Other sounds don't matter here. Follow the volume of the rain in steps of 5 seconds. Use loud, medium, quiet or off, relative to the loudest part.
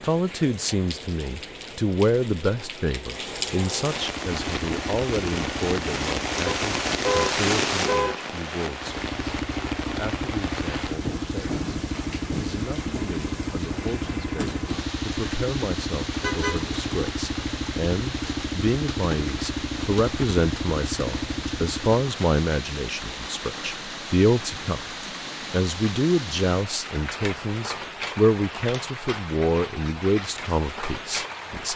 medium, loud, medium, medium, medium, medium, medium.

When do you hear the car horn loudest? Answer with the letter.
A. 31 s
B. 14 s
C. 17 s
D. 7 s
D.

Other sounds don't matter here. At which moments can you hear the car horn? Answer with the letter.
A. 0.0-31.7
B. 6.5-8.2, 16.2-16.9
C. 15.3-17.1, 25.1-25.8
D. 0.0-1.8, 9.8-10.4
B.